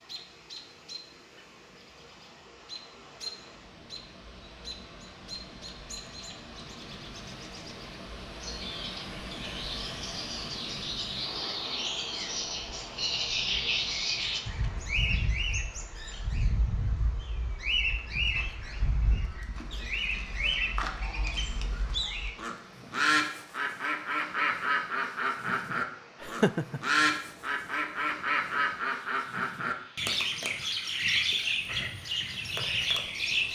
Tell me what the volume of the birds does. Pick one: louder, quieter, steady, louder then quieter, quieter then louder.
louder.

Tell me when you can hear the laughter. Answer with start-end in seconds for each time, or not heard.
26.2-26.8.